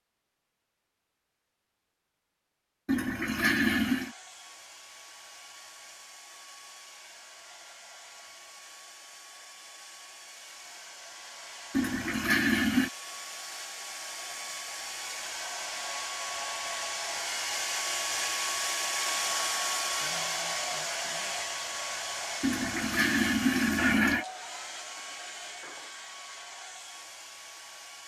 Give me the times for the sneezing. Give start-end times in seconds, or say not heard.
not heard.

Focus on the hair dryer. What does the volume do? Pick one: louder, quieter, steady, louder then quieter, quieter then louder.
louder then quieter.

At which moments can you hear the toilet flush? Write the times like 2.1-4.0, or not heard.
2.9-4.1, 11.7-12.9, 22.4-24.2.